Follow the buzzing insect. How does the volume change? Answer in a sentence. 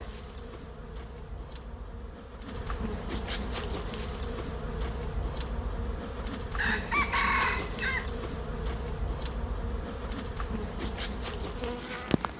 The volume of the buzzing insect goes up.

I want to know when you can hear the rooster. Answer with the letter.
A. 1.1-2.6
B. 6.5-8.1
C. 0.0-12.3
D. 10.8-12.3
B.